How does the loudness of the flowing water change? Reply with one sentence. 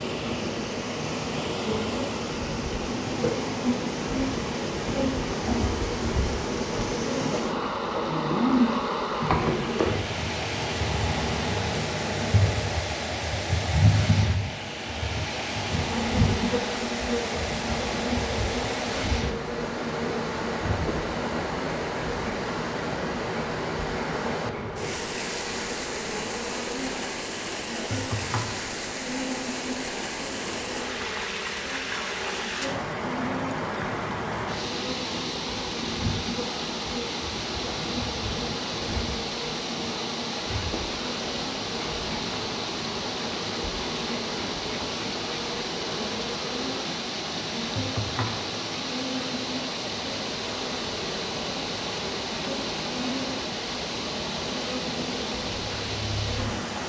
The loudness of the flowing water stays about the same.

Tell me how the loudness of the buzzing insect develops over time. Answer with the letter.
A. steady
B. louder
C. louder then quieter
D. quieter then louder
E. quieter
E.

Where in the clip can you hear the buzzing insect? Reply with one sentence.
The buzzing insect can be heard from 0.0 to 56.7 s.